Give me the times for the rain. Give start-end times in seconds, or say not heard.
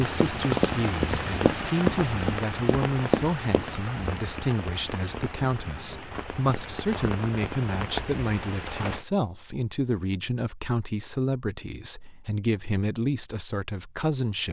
0.0-9.1.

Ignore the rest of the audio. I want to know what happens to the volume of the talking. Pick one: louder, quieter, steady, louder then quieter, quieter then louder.
steady.